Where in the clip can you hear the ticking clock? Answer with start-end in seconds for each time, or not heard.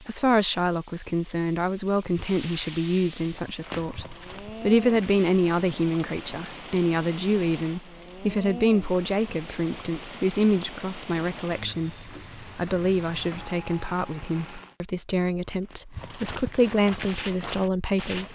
not heard.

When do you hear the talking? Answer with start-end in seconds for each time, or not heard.
0.1-11.9, 12.6-18.3.